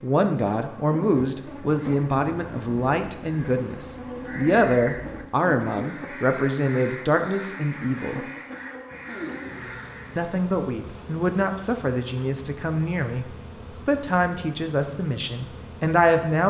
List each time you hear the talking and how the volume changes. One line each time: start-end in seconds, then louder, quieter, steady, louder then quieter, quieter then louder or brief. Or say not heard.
0.0-8.2 steady
10.2-16.4 steady.